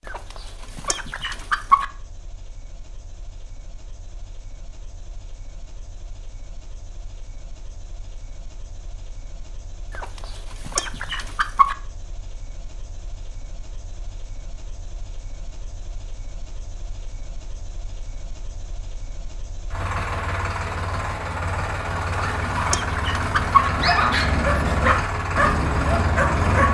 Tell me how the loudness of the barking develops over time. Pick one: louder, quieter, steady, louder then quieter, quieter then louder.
louder then quieter.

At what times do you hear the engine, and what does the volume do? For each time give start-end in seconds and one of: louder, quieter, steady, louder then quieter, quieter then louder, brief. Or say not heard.
0.0-26.6 louder.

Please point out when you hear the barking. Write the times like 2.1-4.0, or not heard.
22.3-26.6.